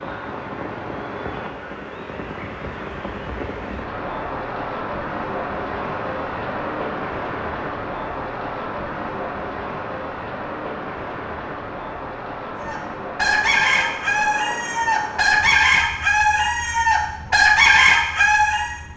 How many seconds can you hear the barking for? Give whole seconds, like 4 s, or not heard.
not heard.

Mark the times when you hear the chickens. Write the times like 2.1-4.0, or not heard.
12.6-18.8.